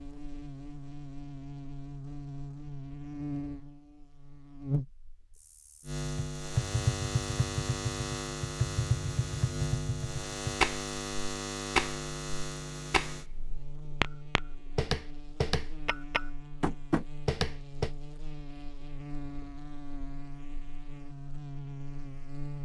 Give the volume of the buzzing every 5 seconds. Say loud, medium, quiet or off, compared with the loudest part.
loud, loud, loud, medium, medium.